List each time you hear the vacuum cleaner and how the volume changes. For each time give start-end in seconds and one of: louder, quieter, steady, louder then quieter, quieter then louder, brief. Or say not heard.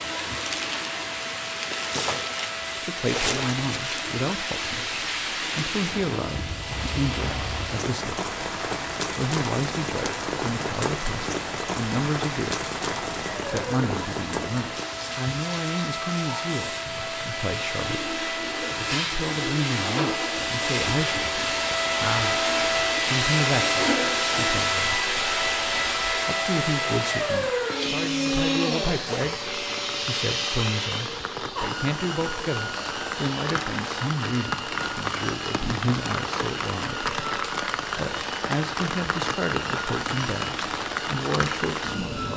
0.0-42.3 louder then quieter.